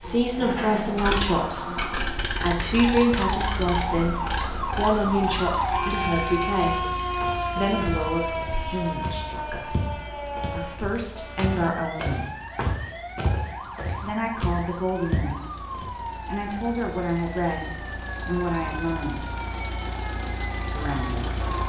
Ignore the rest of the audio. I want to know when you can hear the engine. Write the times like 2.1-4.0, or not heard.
0.1-21.6.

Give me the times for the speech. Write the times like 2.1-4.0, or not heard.
0.0-6.8, 7.5-12.3, 14.0-19.2, 20.8-21.5.